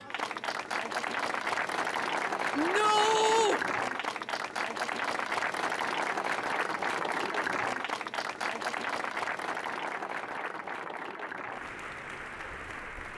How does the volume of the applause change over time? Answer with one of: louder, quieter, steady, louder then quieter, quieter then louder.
quieter.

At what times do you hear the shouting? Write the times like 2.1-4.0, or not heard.
2.5-3.6.